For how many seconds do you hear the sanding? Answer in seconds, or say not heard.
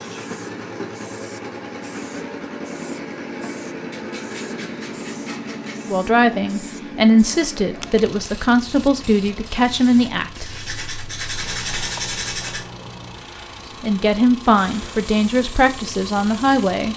4 s.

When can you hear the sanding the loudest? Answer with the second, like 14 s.
12 s.